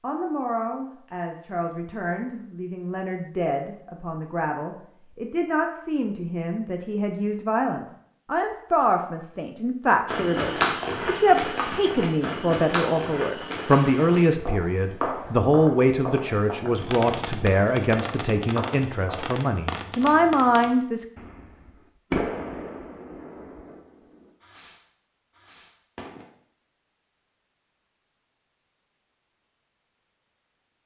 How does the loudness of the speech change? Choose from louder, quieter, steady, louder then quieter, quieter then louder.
louder.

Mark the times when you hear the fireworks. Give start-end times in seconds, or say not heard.
16.8-26.2.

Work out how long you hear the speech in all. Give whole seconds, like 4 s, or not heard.
21 s.